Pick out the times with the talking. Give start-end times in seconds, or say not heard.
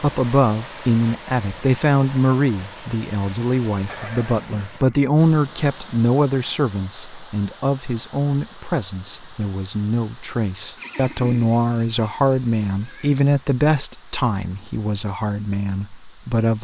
0.0-16.5.